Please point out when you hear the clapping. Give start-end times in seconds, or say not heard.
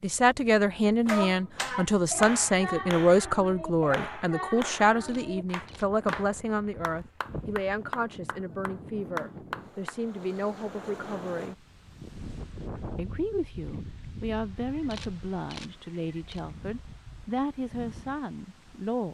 1.1-9.9.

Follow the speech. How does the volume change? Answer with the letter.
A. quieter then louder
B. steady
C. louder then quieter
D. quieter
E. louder
D.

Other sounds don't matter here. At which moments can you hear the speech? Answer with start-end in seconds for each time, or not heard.
0.0-11.6, 12.9-19.0.